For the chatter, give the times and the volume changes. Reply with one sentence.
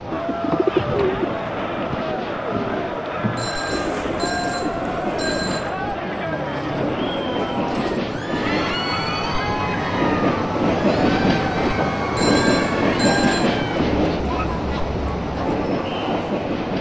You can hear the chatter from 0.0 to 16.7 s, at a steady volume.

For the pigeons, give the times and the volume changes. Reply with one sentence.
You can hear the pigeons from 0.1 to 8.0 s, getting quieter.